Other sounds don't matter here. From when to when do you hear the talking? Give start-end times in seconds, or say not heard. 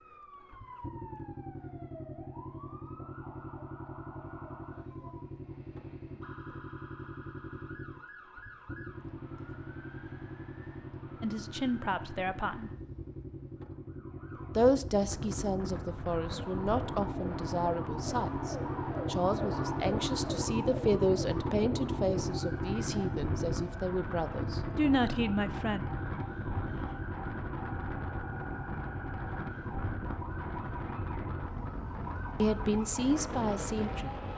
11.2-12.7, 14.6-25.9, 32.4-34.1.